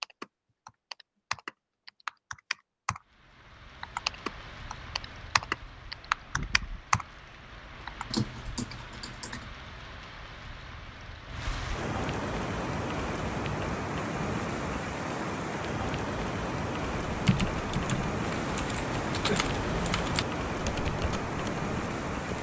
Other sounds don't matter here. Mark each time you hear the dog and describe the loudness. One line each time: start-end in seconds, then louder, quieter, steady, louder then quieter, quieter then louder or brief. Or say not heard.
not heard.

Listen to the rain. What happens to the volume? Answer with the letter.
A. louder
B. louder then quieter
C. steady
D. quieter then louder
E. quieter
A.